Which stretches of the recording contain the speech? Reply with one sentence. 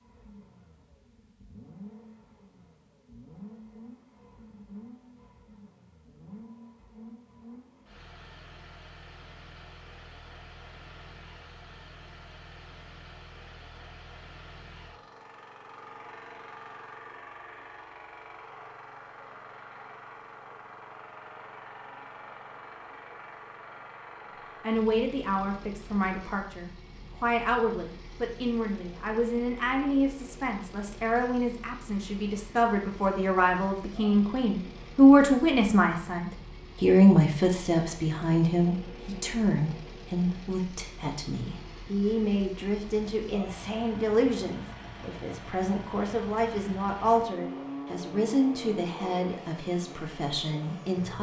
The speech can be heard from 24.6 to 51.1 s.